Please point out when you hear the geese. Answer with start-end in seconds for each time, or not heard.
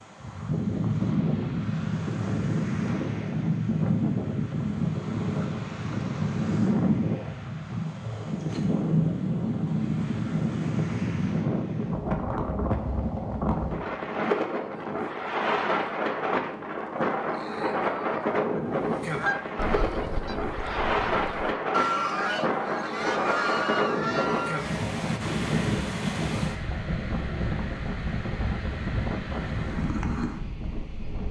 18.6-24.9.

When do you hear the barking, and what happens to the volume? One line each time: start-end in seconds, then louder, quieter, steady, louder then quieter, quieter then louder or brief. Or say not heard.
not heard.